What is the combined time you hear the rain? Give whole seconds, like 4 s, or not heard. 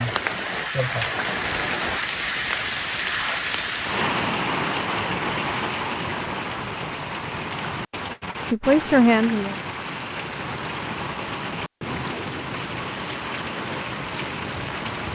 15 s.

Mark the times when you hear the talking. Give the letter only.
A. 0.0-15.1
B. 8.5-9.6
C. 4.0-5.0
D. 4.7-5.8
B.